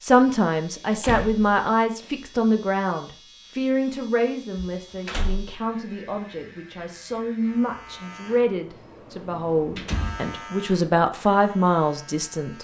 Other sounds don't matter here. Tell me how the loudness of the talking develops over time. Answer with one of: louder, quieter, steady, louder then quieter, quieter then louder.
quieter then louder.